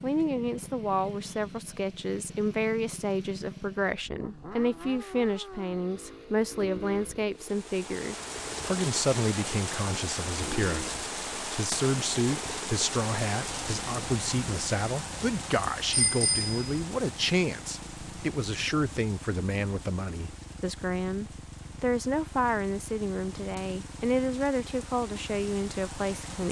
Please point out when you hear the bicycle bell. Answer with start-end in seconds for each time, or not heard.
15.9-16.8.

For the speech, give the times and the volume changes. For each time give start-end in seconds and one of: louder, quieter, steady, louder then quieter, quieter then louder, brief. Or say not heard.
0.0-26.4 steady.